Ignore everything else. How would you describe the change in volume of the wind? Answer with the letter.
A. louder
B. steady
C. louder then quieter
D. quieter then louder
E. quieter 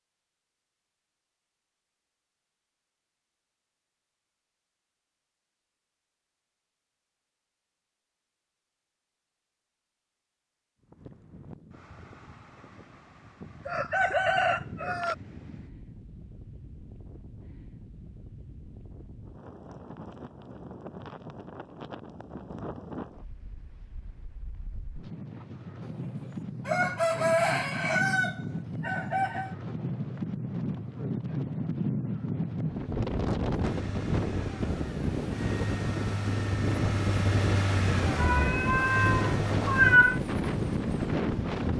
A.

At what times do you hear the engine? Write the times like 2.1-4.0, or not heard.
33.6-40.0.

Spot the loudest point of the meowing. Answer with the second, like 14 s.
40 s.